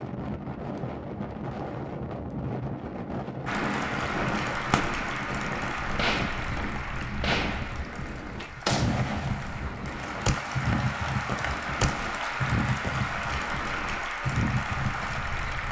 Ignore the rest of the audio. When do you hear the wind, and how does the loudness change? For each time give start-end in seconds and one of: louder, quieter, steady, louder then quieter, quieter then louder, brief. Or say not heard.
0.0-15.6 steady.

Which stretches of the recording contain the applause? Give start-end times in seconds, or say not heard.
3.5-15.6.